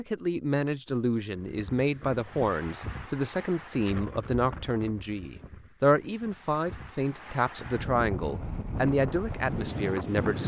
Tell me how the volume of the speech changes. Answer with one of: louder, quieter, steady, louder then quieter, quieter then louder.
steady.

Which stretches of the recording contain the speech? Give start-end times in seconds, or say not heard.
0.0-10.4.